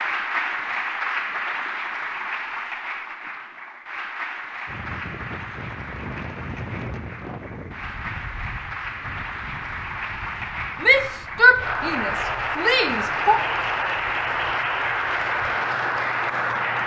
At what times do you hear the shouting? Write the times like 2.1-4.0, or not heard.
10.8-13.4.